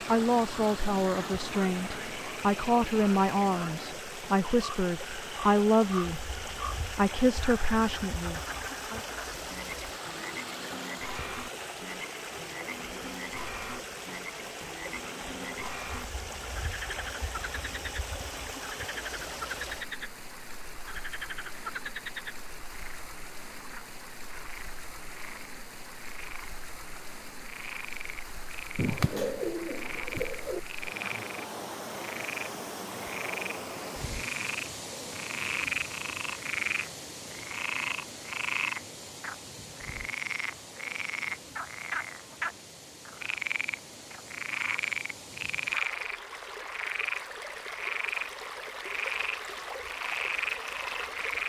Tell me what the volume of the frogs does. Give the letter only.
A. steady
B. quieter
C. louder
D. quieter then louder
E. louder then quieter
C.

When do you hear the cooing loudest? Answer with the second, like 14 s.
29 s.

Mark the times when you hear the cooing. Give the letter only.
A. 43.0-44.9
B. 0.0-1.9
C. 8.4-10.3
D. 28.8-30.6
D.